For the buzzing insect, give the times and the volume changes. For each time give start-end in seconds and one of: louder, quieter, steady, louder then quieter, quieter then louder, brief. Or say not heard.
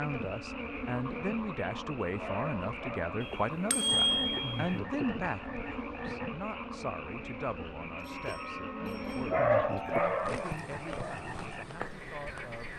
0.0-12.7 steady.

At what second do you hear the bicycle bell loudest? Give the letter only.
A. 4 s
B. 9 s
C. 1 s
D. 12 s
A.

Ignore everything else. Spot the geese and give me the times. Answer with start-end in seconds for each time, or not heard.
not heard.